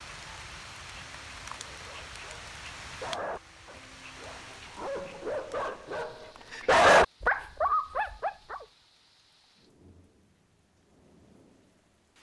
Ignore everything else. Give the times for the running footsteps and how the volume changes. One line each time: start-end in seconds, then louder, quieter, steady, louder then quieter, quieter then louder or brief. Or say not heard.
not heard.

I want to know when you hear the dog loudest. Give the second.
7 s.